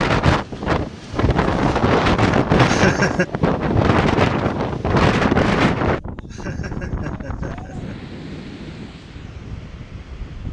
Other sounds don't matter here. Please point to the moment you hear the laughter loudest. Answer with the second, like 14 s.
3 s.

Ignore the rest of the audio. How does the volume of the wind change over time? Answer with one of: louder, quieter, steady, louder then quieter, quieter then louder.
quieter.